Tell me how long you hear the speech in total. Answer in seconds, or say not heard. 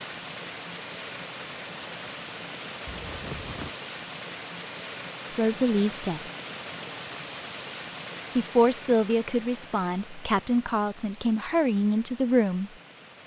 5 s.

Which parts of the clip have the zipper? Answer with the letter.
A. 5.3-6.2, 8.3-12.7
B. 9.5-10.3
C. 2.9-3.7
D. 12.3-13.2
C.